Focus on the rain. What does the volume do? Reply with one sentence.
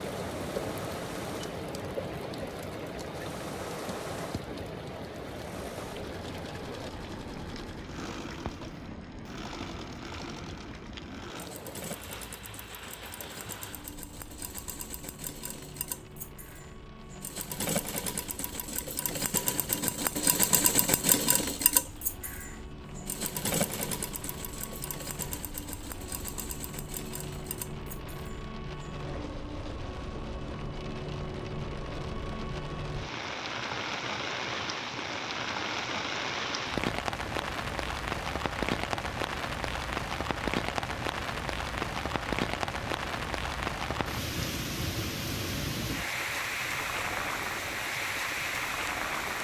The loudness of the rain goes down, then up.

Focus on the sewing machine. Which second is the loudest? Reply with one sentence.
The loudest moment of the sewing machine is at 21 seconds.